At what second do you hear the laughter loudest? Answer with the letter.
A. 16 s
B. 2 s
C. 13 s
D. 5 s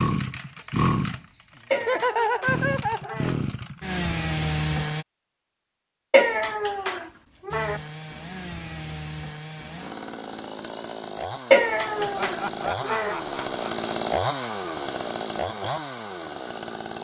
B.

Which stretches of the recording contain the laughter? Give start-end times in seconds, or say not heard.
1.8-3.1, 11.9-13.9.